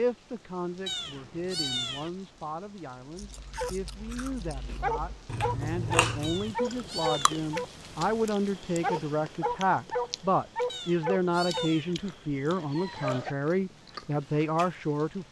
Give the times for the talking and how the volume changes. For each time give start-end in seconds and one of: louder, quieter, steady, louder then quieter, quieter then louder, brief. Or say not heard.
0.0-15.2 louder.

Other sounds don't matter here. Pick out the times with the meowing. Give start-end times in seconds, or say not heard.
0.8-2.1, 6.2-7.5, 10.7-11.9.